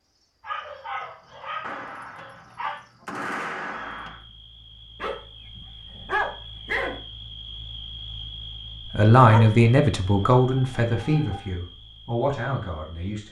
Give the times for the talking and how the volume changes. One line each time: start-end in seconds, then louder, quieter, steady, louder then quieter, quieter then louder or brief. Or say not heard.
8.9-13.2 quieter then louder.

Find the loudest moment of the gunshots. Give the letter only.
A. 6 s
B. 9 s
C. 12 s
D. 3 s
D.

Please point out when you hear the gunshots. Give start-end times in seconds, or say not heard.
1.6-4.2.